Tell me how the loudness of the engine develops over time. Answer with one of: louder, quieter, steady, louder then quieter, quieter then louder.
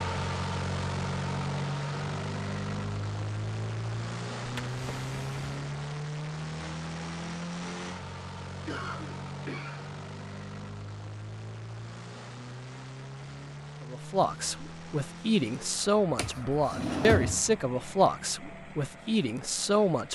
quieter.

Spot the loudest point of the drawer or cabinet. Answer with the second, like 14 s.
17 s.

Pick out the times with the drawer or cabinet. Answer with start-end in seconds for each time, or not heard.
4.5-5.3, 16.1-17.6.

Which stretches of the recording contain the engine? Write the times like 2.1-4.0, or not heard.
0.0-20.1.